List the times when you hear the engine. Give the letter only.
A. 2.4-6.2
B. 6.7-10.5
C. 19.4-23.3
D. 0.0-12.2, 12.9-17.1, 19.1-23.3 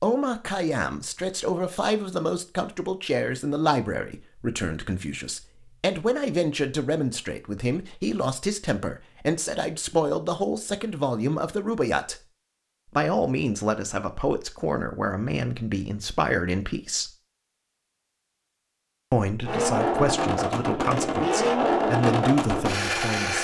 C.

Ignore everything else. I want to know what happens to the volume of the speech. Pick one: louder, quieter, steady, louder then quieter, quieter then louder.
steady.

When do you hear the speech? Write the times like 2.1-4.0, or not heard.
0.0-12.2, 12.9-17.1, 19.1-23.3.